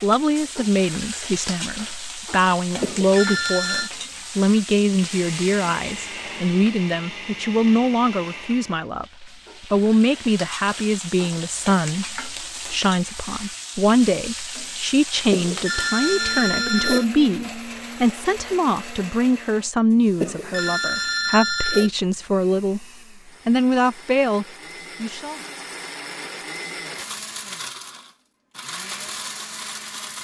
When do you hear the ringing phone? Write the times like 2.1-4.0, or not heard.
2.8-3.9, 15.3-17.1, 20.2-21.9.